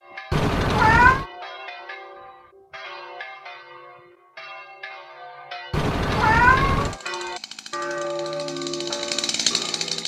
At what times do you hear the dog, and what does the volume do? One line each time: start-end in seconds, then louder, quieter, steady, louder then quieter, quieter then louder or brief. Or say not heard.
not heard.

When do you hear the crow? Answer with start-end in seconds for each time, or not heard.
not heard.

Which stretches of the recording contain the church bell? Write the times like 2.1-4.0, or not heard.
0.0-10.0.